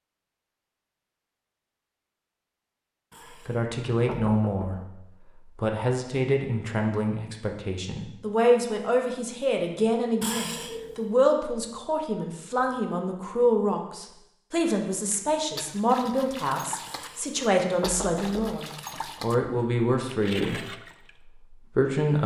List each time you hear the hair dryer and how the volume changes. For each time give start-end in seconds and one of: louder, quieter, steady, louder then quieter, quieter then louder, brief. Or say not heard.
not heard.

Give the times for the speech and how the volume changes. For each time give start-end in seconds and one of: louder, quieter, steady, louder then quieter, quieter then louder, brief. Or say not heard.
3.5-20.8 steady
21.5-22.2 brief.